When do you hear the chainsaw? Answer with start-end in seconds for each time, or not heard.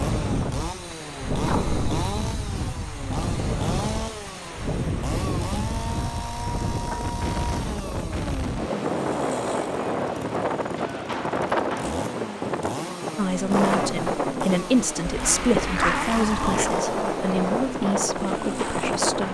0.0-19.2.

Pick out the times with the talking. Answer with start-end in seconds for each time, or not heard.
13.2-19.2.